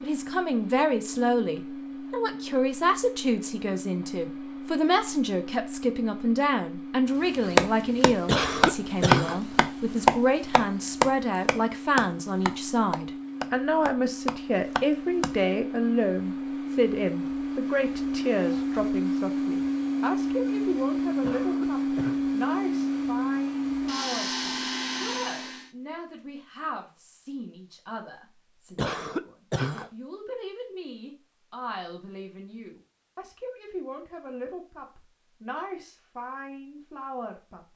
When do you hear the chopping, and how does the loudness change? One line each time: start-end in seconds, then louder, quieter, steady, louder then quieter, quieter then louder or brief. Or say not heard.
7.3-15.3 quieter.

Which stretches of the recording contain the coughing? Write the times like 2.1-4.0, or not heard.
8.2-9.4, 21.2-22.1, 28.8-29.9.